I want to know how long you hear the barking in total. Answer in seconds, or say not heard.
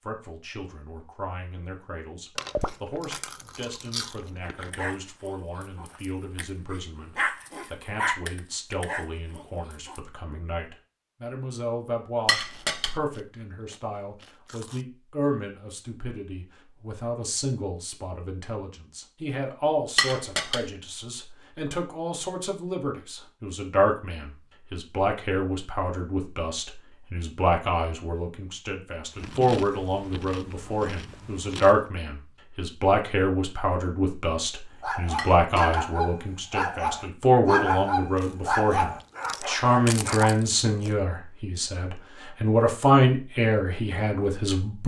11 s.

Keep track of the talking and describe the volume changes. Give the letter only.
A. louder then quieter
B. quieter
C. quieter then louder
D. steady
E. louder
E.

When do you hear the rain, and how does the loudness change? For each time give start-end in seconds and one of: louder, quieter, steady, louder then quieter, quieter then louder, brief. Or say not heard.
not heard.